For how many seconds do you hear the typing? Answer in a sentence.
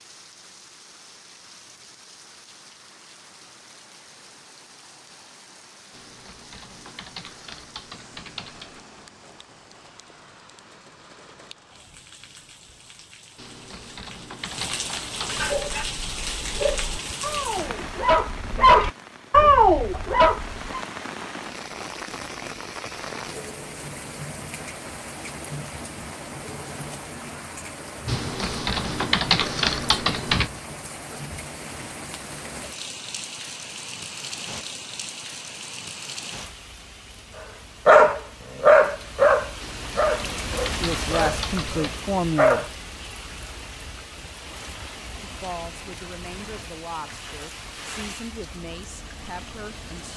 You can hear the typing for 10 seconds altogether.